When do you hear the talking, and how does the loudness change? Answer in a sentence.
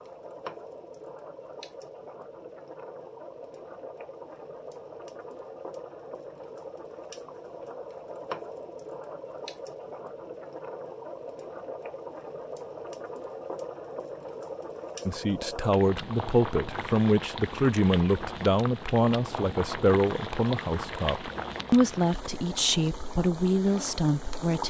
The talking can be heard from 15.1 to 24.6 s, at a steady volume.